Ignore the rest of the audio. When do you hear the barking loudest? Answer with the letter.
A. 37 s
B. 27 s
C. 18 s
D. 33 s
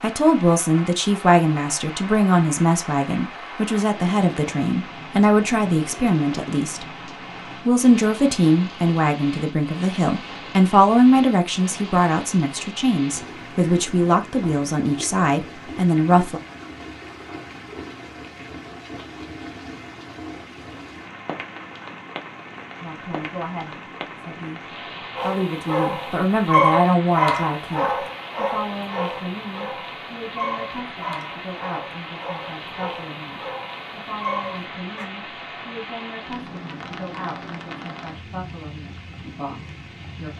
B.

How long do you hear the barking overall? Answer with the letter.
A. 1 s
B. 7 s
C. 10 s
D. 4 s
C.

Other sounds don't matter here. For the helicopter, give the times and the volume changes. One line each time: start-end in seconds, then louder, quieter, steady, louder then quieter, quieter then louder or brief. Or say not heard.
not heard.